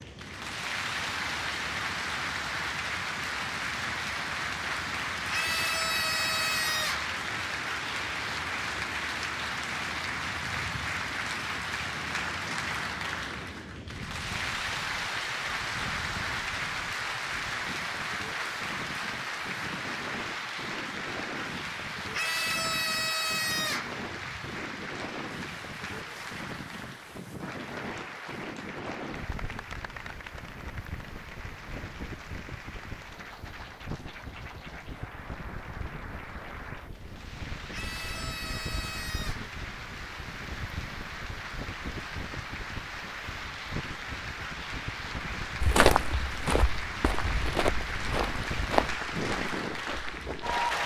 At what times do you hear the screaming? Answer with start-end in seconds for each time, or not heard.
5.3-7.1, 22.1-23.9, 37.7-39.4.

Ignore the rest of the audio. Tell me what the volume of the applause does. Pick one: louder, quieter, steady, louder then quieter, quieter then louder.
quieter then louder.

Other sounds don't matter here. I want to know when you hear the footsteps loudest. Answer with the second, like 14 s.
46 s.